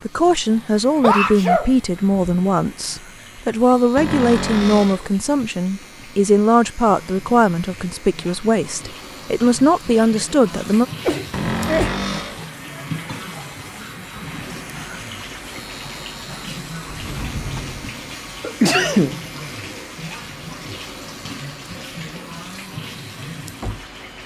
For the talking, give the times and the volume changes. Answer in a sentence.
You can hear the talking from 0.1 to 10.8 s, at a steady volume.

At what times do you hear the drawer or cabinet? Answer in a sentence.
The drawer or cabinet can be heard from 4.0 to 5.1 s, from 11.3 to 12.4 s and from 16.9 to 17.9 s.